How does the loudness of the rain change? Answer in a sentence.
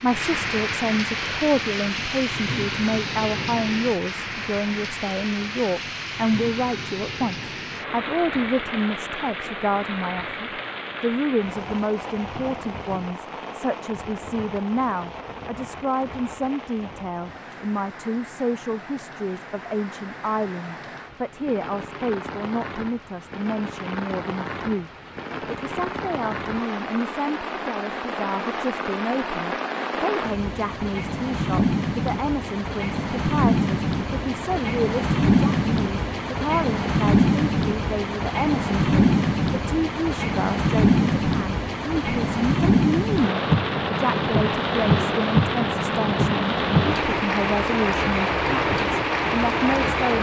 The volume of the rain goes down, then up.